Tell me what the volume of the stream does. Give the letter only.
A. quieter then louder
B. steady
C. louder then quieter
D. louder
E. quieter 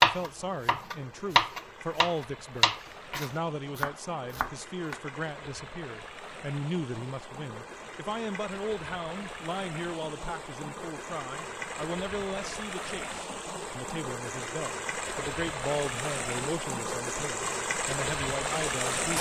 D.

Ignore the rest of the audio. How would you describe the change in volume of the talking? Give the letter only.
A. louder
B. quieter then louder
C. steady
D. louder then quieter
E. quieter
C.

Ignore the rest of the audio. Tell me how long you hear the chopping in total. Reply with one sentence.
The chopping can be heard for 5 seconds in total.